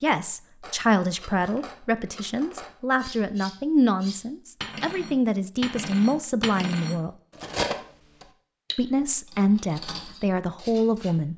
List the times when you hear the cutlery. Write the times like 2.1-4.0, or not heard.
0.6-11.2.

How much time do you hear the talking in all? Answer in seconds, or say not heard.
10 s.